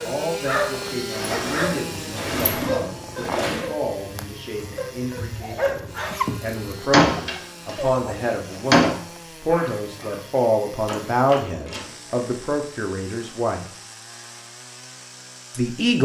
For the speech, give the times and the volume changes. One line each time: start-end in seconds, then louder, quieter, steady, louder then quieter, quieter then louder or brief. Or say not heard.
0.0-13.7 louder
15.5-16.0 brief.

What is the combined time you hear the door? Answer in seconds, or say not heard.
6 s.